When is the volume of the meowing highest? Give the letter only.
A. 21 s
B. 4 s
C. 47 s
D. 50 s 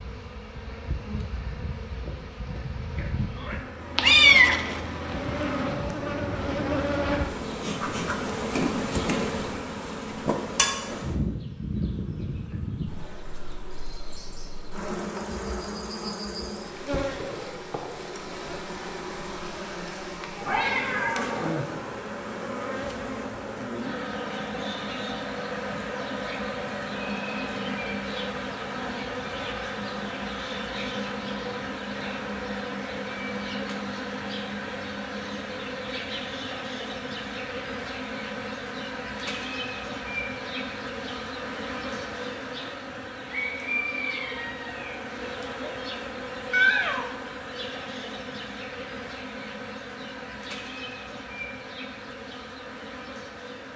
B.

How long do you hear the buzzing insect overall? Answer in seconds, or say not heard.
54 s.